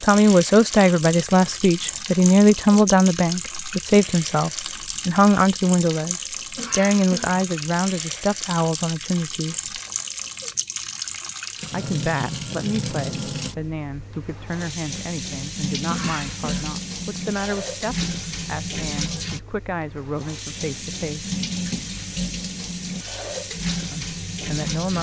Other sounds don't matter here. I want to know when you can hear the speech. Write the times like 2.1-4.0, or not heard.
0.0-9.8, 11.7-21.3, 23.9-24.9.